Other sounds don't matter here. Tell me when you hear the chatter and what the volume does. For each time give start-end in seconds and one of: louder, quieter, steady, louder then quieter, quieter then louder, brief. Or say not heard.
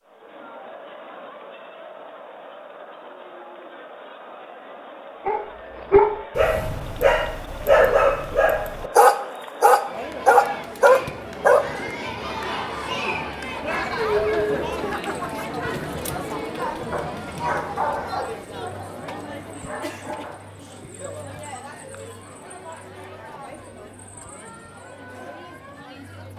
0.0-26.3 louder then quieter.